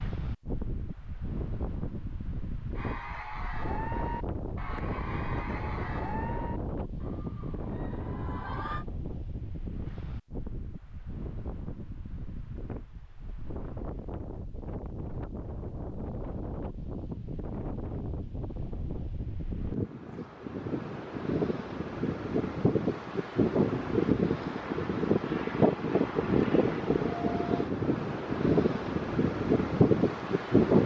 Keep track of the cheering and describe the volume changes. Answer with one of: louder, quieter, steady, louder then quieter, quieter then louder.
quieter.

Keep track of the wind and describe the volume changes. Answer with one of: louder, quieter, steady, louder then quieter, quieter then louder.
louder.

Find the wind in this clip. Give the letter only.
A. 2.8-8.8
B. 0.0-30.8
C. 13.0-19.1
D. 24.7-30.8
B.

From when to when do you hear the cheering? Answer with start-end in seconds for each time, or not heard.
2.8-8.8.